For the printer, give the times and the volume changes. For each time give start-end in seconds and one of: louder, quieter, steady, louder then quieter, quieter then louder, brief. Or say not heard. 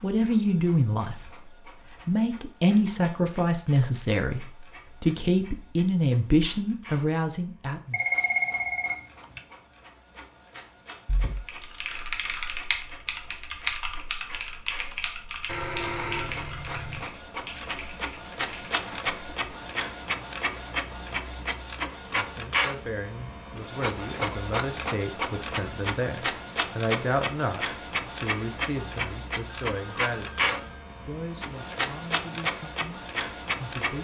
0.0-33.9 louder.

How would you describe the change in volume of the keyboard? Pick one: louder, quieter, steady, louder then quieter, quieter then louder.
quieter.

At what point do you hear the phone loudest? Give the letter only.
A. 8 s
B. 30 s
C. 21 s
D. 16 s
A.